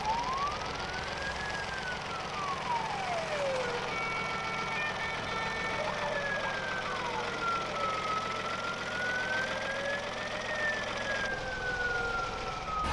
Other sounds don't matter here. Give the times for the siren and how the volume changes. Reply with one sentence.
You can hear the siren from 0.0 to 12.8 s, at a steady volume.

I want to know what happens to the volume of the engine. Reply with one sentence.
The loudness of the engine stays about the same.